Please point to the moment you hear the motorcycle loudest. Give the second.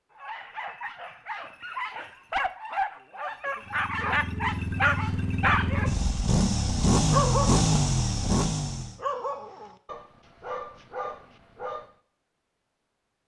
7 s.